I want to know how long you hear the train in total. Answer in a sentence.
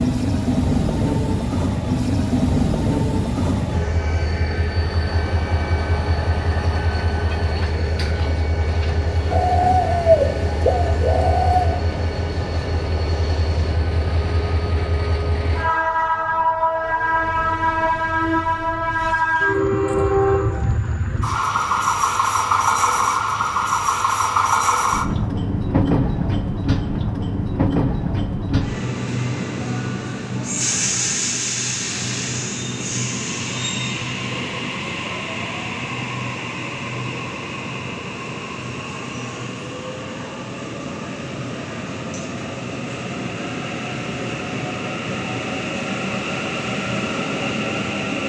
The train can be heard for 48 seconds in total.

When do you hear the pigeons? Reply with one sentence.
The pigeons can be heard from 9.3 to 11.8 s.